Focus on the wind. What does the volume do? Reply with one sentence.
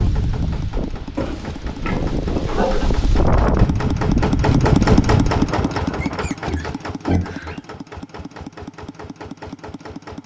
The volume of the wind goes up.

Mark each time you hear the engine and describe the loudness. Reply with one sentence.
The engine can be heard from 0.0 to 10.2 s, getting louder then quieter.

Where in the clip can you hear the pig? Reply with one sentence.
The pig can be heard from 1.1 to 2.9 s and from 5.8 to 7.6 s.